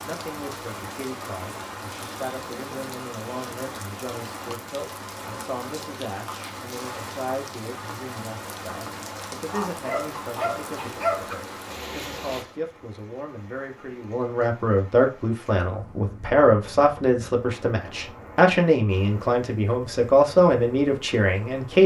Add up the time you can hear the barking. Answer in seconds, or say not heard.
2 s.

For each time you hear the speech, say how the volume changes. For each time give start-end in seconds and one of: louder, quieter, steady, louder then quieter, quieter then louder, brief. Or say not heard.
0.0-21.8 louder.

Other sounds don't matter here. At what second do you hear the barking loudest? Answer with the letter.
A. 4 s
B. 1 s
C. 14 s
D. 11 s
D.